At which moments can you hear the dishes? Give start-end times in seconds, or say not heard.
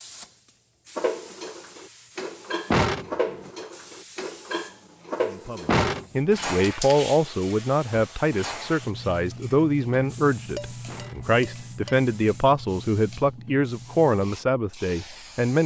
0.9-12.1.